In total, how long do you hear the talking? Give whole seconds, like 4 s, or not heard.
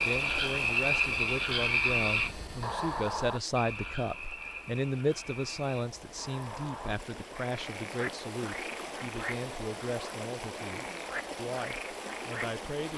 13 s.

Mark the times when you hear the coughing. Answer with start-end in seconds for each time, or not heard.
not heard.